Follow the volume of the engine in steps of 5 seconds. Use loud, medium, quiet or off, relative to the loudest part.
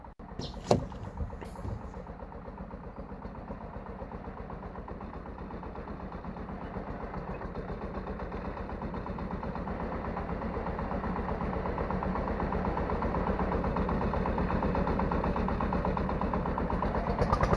quiet, medium, loud, loud.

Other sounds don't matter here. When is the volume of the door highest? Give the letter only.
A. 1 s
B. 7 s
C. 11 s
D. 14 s
A.